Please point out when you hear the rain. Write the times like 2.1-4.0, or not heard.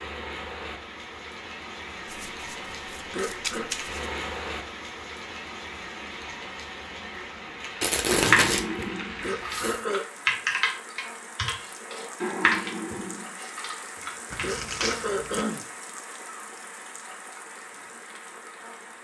0.0-18.9.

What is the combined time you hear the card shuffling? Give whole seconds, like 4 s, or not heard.
5 s.